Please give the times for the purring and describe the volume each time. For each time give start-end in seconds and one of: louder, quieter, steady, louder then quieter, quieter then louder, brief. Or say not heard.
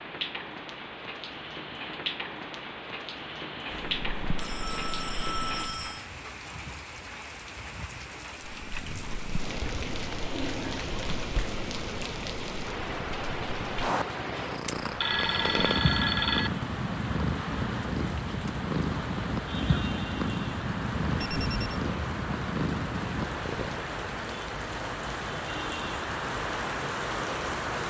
3.7-5.9 brief
8.4-23.9 louder.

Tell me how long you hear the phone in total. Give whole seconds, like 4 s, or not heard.
4 s.